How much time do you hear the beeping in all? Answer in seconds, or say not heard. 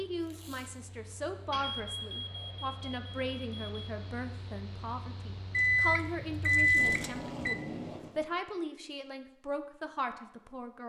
4 s.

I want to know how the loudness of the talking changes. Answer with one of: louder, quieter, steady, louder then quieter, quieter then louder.
steady.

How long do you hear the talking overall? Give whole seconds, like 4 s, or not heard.
11 s.